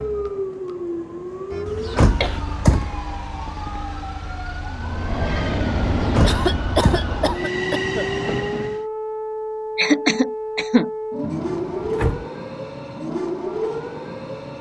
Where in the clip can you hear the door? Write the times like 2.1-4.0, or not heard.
1.6-3.0, 6.0-7.2, 11.2-12.2.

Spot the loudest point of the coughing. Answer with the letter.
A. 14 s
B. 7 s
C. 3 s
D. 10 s
D.